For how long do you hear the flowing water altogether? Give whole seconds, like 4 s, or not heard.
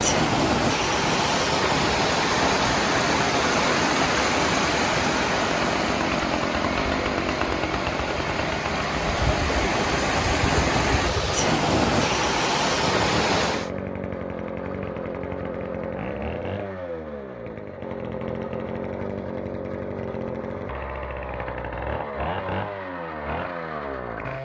14 s.